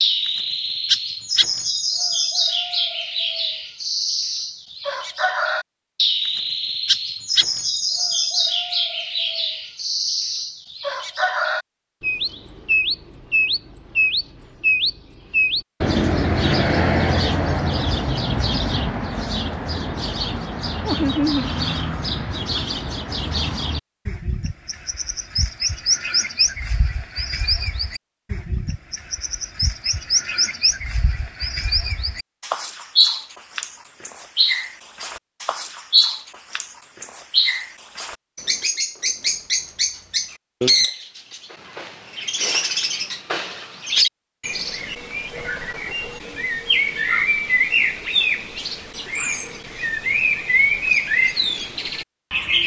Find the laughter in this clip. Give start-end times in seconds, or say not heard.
20.9-21.5.